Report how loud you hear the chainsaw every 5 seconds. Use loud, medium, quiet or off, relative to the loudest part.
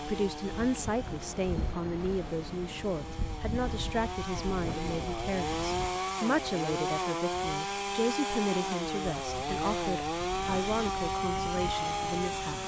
medium, loud, loud.